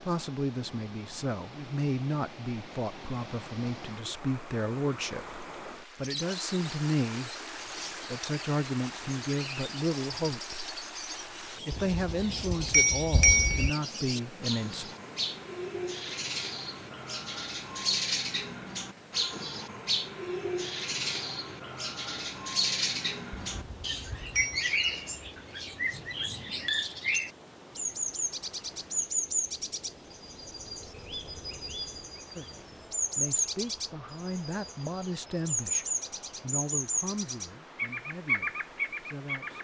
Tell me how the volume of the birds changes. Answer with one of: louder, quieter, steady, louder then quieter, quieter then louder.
louder.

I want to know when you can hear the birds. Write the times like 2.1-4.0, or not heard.
6.0-39.5.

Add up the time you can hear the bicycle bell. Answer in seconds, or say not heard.
3 s.